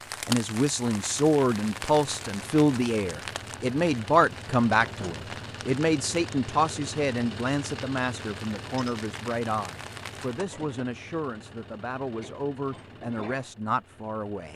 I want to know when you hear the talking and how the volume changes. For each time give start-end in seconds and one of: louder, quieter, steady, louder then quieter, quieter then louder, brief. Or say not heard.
0.2-14.5 quieter.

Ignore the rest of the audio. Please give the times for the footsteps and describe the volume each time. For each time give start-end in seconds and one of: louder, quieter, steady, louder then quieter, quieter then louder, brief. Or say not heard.
not heard.